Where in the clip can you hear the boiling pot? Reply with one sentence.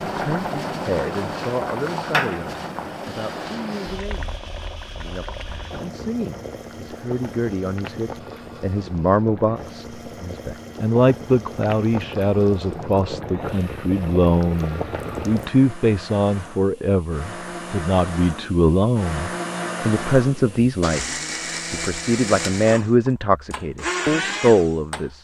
You can hear the boiling pot from 0.0 to 15.5 s.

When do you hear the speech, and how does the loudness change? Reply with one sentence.
The speech can be heard from 0.1 to 25.1 s, getting louder.